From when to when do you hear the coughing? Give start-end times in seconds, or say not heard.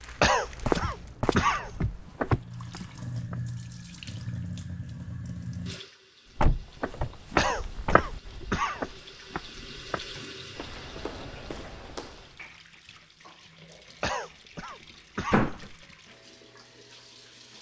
0.2-2.1, 7.3-8.9, 14.0-15.9.